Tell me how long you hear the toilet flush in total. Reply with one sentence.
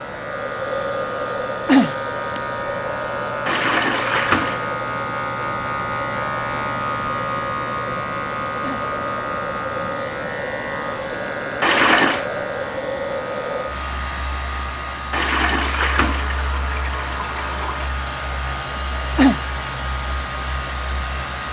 The toilet flush can be heard for 5 seconds in total.